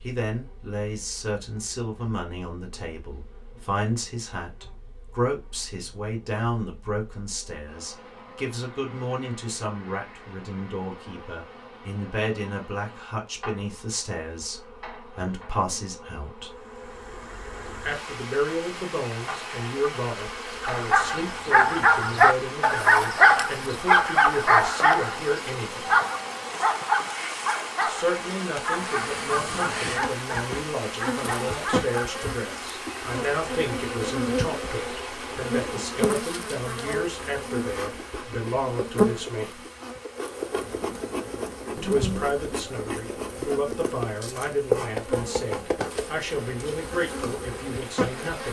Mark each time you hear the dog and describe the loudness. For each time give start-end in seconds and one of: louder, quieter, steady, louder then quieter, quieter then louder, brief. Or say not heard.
20.6-32.1 quieter.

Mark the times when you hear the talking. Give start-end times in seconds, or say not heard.
0.0-16.5, 17.8-25.9, 27.9-39.6, 41.8-48.4.